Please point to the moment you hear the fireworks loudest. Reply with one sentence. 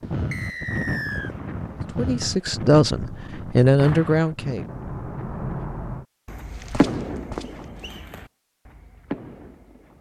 The loudest moment of the fireworks is at 7 seconds.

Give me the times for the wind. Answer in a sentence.
You can hear the wind from 0.0 to 5.5 s.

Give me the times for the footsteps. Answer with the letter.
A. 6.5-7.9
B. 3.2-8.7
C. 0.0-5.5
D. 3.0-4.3
A.